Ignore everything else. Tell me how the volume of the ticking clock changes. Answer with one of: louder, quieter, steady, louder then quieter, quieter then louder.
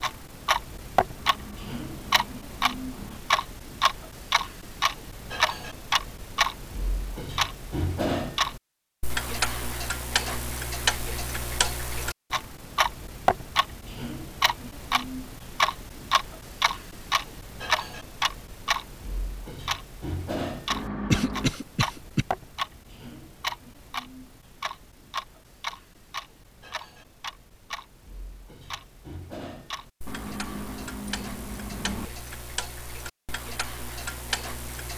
quieter.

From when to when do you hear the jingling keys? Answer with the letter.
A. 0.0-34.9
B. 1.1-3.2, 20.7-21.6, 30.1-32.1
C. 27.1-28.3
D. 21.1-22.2
B.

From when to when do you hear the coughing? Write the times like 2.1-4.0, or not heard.
21.1-22.2.